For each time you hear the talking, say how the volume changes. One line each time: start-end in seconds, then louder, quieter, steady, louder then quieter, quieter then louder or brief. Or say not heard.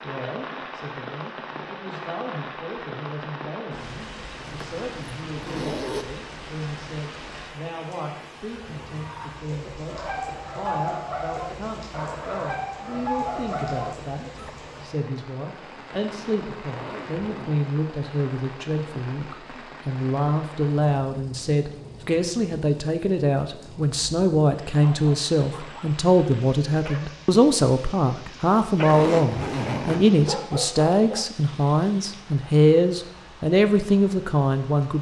0.0-34.9 louder.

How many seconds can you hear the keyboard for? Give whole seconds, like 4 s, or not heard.
not heard.